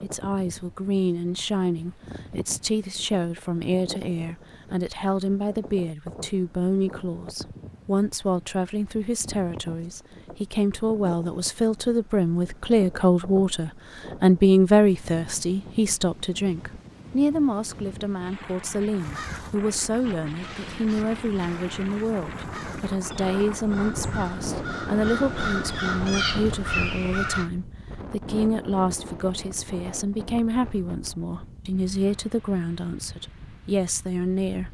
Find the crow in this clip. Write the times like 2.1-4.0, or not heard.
18.9-27.5.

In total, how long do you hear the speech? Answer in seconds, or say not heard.
35 s.